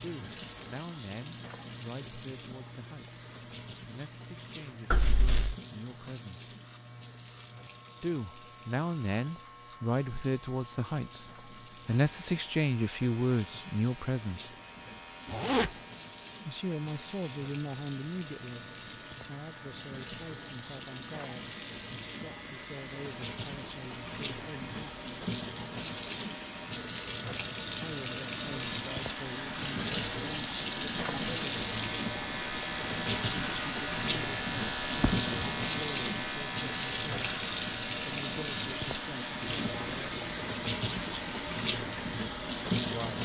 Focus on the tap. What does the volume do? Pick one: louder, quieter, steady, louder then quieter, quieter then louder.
louder.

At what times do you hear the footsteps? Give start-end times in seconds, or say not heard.
not heard.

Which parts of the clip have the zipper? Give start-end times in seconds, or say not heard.
4.9-5.5, 15.2-15.7, 35.0-35.6.